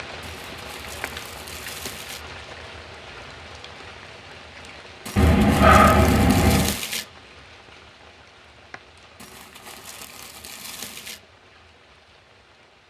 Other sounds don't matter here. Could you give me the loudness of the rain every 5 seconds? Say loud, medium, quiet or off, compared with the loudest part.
loud, medium, quiet.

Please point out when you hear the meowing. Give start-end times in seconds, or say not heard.
5.2-6.8.